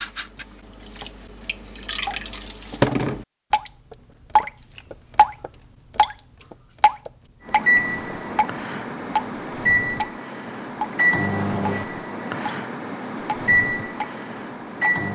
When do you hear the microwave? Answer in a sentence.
You can hear the microwave from 7.5 to 15.0 s.